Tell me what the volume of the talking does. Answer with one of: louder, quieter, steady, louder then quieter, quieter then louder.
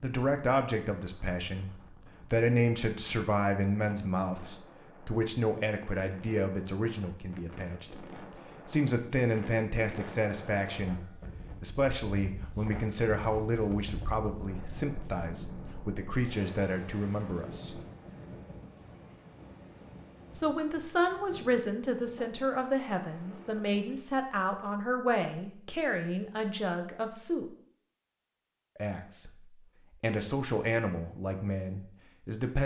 steady.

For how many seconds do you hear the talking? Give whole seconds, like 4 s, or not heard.
29 s.